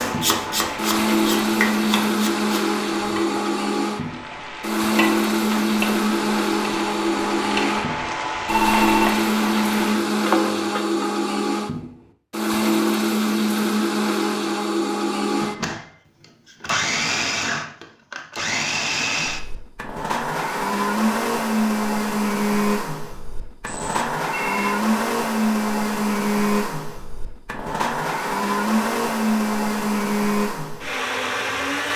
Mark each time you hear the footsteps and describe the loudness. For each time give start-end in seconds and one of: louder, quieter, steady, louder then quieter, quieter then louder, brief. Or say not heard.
not heard.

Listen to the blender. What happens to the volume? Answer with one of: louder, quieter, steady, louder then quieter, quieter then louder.
steady.